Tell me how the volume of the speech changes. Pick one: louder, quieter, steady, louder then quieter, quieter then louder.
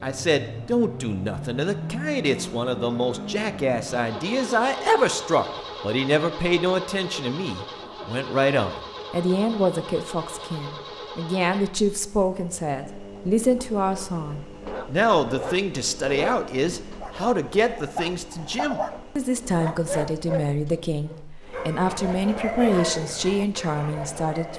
steady.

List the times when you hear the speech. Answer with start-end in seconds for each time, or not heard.
0.0-24.5.